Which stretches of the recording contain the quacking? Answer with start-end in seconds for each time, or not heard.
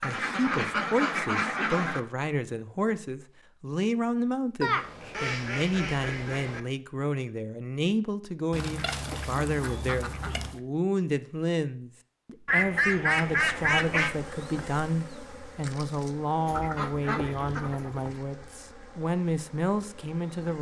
0.0-2.0, 4.6-6.6, 8.5-10.6, 12.4-14.2, 16.4-18.1.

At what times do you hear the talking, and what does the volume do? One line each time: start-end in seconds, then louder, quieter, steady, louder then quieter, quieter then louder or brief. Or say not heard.
0.0-20.5 steady.